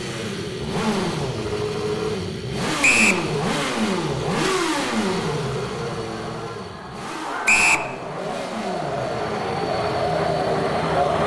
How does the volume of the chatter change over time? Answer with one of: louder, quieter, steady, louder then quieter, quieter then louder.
louder.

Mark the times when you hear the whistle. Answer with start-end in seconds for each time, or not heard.
2.8-3.2, 7.5-7.9.